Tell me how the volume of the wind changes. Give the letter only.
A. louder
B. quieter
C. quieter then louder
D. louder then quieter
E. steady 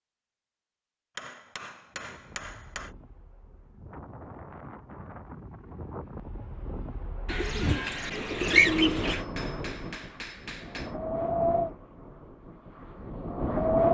A.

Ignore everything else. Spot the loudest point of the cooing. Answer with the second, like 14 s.
9 s.